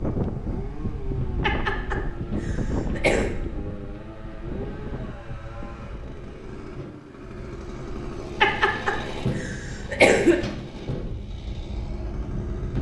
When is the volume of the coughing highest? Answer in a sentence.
The volume of the coughing peaks at 10 seconds.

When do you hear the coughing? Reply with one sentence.
The coughing can be heard from 1.4 to 3.4 s and from 8.4 to 10.3 s.